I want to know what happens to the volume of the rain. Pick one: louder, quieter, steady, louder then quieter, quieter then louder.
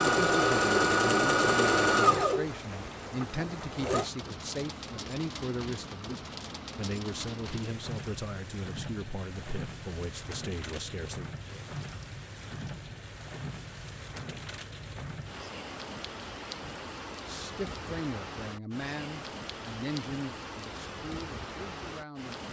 steady.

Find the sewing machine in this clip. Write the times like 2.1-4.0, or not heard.
0.0-4.1.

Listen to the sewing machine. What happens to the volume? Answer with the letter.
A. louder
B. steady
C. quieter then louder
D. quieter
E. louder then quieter
D.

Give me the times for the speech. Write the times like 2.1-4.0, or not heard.
0.1-11.3, 17.2-22.4.